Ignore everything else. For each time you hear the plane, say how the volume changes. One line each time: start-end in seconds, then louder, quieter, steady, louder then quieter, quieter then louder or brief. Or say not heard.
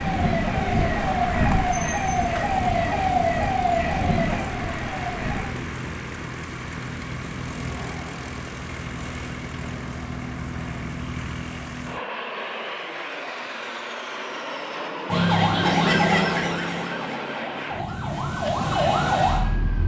0.0-19.8 steady.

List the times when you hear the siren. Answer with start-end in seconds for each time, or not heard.
0.0-5.5, 15.1-19.8.